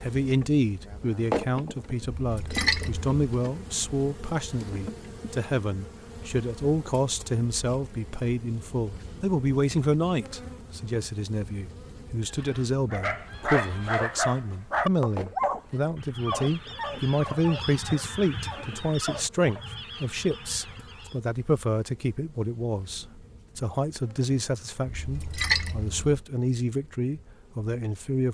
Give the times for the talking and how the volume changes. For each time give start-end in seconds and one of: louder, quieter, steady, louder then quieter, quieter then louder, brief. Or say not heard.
0.0-28.2 steady.